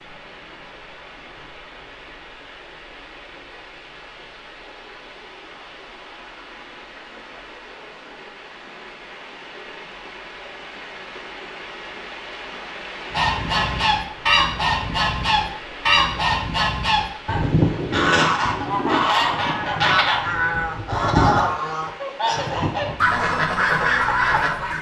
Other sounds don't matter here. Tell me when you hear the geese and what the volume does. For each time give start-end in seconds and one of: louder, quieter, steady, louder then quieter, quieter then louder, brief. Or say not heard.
13.1-24.7 steady.